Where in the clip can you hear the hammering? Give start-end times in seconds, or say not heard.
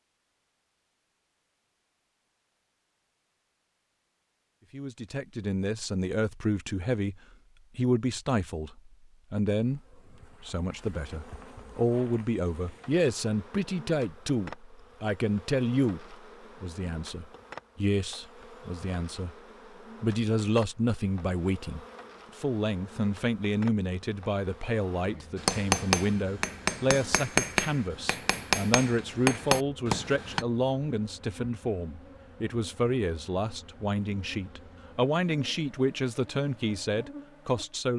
25.4-30.4.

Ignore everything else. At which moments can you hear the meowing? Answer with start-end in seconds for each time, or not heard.
not heard.